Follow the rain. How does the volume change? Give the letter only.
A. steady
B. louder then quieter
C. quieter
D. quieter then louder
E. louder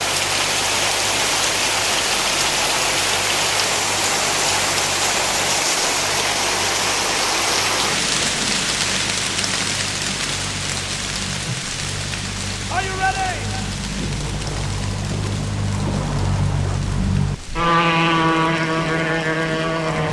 C.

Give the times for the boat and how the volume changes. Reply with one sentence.
The boat can be heard from 0.0 to 20.0 s, getting louder.